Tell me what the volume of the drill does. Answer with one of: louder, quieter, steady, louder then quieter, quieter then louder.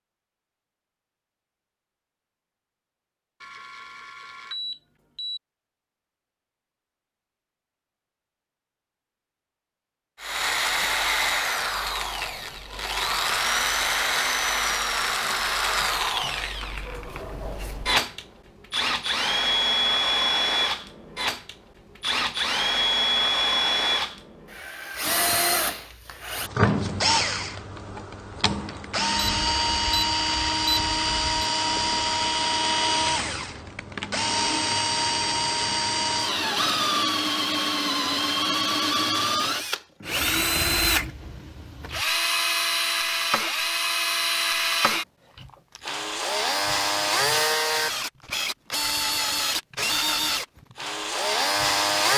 steady.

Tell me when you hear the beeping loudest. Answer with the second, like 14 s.
31 s.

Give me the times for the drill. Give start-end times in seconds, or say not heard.
10.2-52.1.